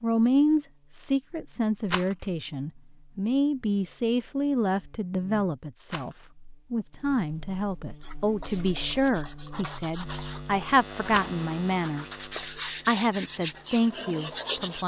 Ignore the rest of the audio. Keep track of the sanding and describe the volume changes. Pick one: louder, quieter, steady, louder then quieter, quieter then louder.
louder.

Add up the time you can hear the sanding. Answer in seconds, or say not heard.
7 s.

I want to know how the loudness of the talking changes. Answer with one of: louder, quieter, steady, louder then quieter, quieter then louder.
steady.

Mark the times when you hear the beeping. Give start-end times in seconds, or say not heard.
not heard.